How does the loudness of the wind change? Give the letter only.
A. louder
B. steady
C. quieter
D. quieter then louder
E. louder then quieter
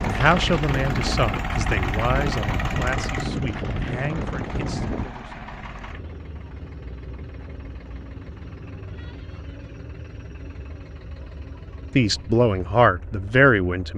C.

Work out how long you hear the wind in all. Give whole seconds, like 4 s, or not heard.
9 s.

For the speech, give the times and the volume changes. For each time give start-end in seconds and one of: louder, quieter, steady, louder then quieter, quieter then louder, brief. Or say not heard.
0.0-5.3 quieter
11.9-13.9 brief.